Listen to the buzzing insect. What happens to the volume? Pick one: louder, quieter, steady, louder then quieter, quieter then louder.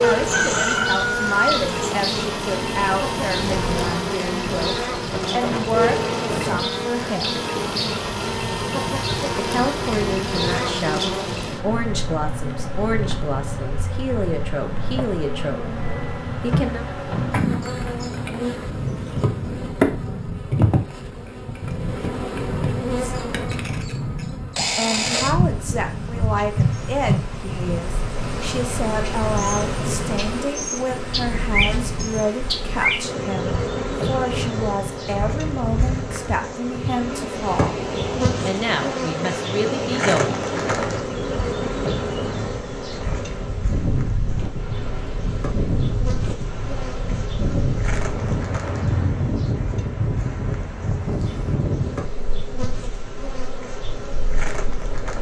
quieter.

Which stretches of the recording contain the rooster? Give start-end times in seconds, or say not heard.
0.0-1.8.